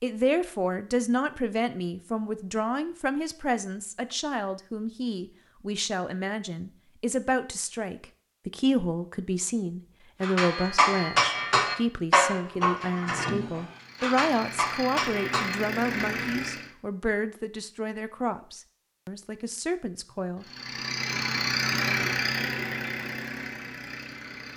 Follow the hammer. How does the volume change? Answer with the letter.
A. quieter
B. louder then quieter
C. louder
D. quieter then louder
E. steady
A.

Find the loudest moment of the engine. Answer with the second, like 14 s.
22 s.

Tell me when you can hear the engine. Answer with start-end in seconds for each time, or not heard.
13.7-16.7, 20.4-24.5.